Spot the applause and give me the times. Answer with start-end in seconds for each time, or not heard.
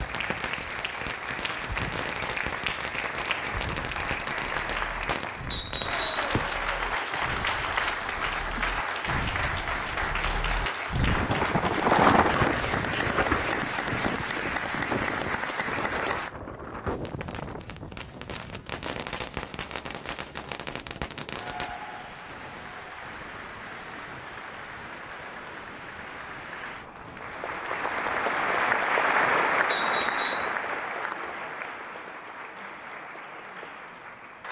0.0-16.4, 21.3-34.4.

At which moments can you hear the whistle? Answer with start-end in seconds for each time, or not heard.
5.5-6.3, 29.7-30.6.